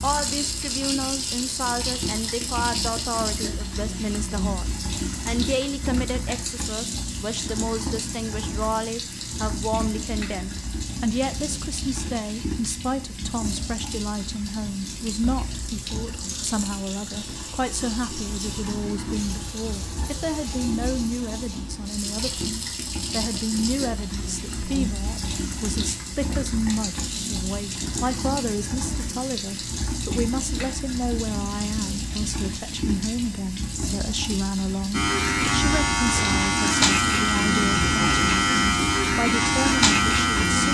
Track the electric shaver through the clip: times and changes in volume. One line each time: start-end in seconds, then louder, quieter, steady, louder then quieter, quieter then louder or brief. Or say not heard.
34.9-40.6 steady.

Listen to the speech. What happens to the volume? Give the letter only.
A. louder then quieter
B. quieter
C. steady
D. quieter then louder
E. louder
C.